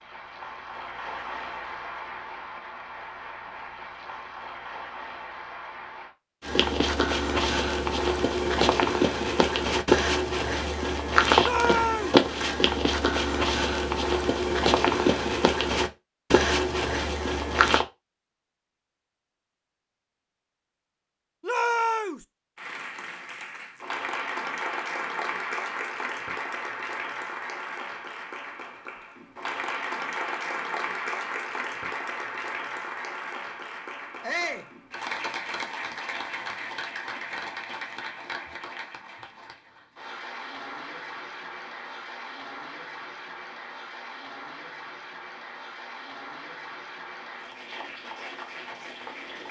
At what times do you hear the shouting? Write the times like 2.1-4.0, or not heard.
11.4-12.2, 21.4-22.2, 34.2-34.7.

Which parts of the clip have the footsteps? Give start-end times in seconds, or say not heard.
6.4-17.9.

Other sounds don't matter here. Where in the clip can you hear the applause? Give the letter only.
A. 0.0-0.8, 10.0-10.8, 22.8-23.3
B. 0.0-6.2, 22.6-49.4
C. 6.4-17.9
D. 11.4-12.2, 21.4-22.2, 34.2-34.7
B.